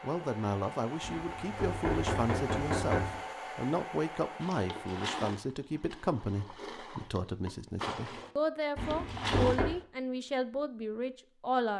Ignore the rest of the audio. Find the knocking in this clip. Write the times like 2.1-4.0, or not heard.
1.0-3.2, 8.8-9.7.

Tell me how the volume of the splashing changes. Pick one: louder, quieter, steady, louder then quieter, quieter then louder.
quieter then louder.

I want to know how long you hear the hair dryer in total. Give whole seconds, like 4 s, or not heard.
5 s.